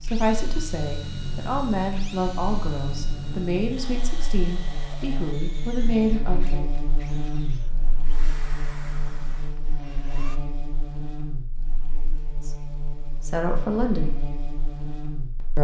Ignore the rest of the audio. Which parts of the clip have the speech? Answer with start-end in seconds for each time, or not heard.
0.0-6.7, 12.4-14.2.